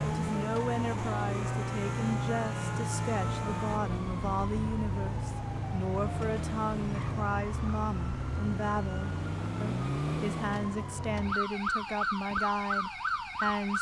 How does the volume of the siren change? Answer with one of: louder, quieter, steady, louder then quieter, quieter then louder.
steady.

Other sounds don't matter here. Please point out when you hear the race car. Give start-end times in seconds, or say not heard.
0.0-3.8.